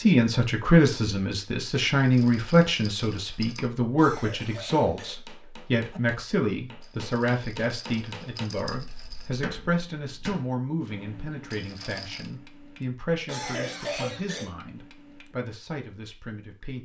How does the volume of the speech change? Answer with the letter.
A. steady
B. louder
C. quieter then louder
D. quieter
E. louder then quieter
D.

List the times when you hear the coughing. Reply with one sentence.
You can hear the coughing from 4.0 to 6.0 s and from 13.2 to 14.6 s.